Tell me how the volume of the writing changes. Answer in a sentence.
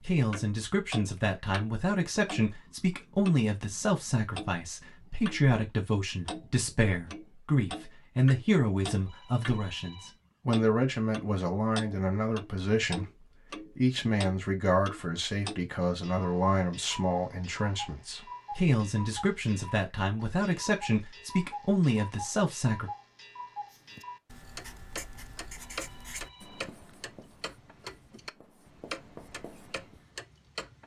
The loudness of the writing goes down, then up.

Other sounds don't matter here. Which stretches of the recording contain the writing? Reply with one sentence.
The writing can be heard from 23.7 to 30.1 s.